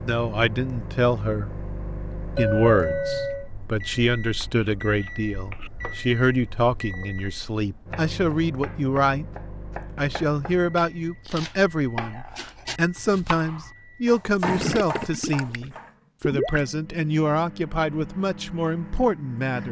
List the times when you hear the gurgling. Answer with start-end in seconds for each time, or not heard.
14.4-16.6.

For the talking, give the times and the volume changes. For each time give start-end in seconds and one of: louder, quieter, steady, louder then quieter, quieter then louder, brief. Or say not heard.
0.0-1.5 brief
2.4-19.6 steady.